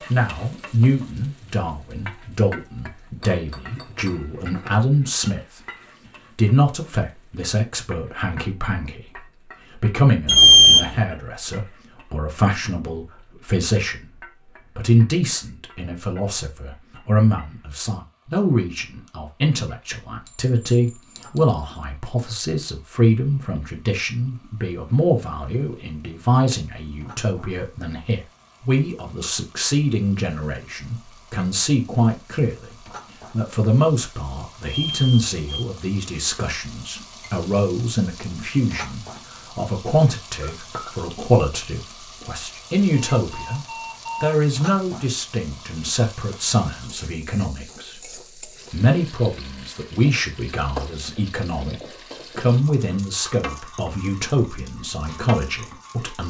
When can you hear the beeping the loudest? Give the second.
11 s.